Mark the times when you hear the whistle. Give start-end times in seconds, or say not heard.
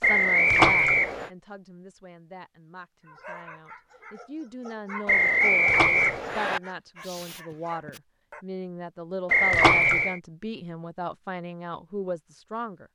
0.0-1.3, 5.0-6.6, 9.2-10.2.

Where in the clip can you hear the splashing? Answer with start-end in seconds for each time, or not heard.
0.5-1.0, 5.7-6.2, 9.5-10.1.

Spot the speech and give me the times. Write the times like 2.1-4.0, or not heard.
0.0-12.8.